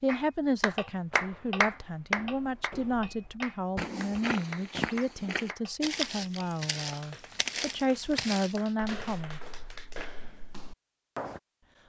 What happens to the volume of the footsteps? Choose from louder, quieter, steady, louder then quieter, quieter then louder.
louder then quieter.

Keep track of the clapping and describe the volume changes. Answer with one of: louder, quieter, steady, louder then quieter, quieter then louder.
quieter.